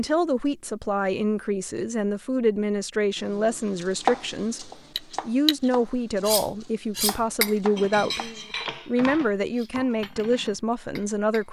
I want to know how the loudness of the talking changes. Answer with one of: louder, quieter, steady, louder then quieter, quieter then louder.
steady.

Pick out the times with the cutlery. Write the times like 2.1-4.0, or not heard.
5.0-11.4.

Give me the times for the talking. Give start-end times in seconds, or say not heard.
0.0-11.4.